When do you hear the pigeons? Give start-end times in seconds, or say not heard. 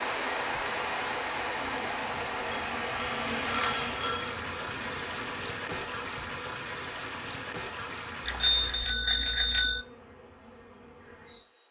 not heard.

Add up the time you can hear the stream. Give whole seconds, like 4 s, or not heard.
9 s.